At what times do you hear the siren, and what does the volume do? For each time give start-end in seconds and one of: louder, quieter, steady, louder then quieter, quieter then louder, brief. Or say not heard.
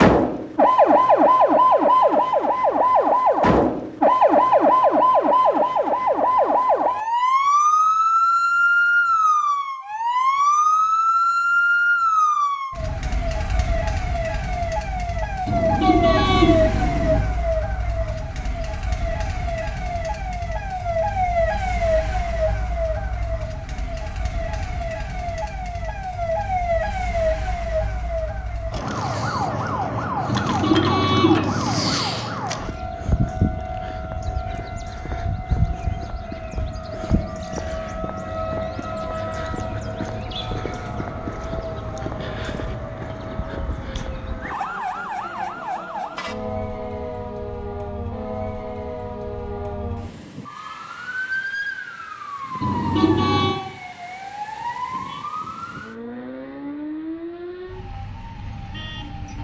0.0-59.3 quieter.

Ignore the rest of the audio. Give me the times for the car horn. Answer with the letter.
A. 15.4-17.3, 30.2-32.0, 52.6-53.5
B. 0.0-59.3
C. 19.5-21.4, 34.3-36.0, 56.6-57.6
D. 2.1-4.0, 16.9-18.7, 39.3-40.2
A.